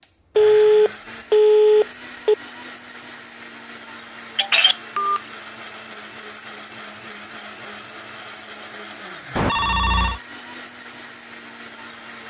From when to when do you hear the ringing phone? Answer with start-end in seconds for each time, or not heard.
0.3-2.4, 4.3-5.2, 9.3-10.2.